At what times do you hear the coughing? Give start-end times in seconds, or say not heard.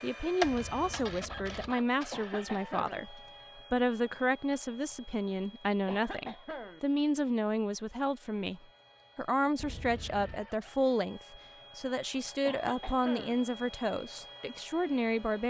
2.1-3.0, 5.8-6.8, 12.4-13.4.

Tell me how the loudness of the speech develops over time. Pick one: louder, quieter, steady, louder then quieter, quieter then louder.
steady.